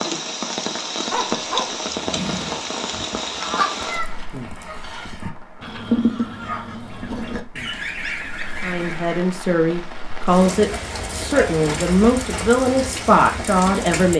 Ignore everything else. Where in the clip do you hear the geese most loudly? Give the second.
6 s.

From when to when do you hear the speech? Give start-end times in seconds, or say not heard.
8.6-14.1.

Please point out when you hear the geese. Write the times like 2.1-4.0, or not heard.
2.8-9.3.